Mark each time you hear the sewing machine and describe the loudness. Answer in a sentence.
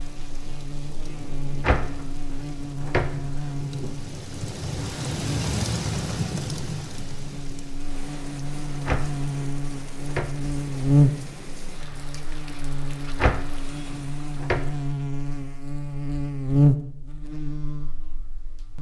You can't hear the sewing machine here.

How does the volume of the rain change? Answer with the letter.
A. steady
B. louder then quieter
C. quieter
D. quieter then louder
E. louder
B.